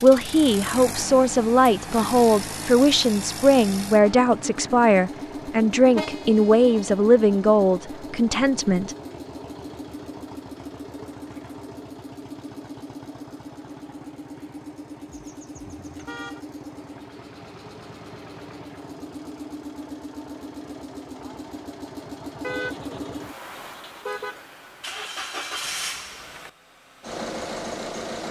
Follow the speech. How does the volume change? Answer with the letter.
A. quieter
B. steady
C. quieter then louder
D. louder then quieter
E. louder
B.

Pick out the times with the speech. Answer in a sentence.
The speech can be heard from 0.0 to 8.9 s.